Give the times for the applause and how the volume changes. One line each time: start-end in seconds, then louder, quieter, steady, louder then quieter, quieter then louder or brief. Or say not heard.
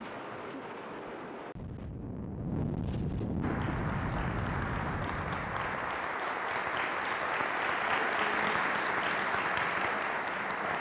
3.4-10.7 louder.